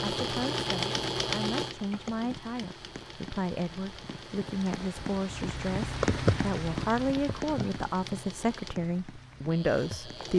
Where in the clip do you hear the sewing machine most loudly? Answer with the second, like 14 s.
1 s.